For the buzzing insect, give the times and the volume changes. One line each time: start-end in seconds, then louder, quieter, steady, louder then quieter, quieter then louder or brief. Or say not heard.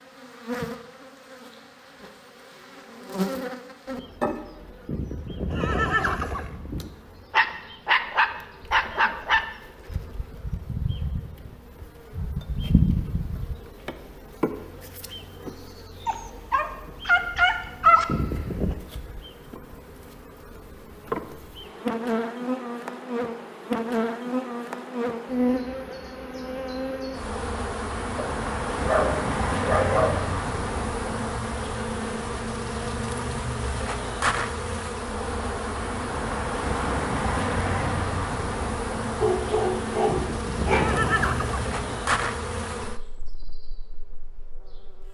0.0-45.1 louder.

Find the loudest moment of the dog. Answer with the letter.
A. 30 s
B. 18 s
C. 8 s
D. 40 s
B.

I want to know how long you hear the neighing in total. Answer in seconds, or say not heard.
5 s.